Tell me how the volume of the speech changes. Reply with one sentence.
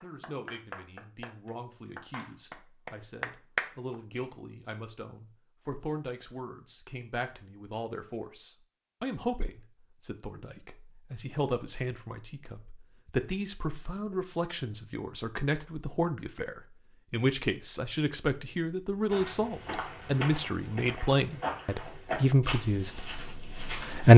The loudness of the speech goes up.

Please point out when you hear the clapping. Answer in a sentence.
The clapping can be heard from 0.0 to 4.0 s.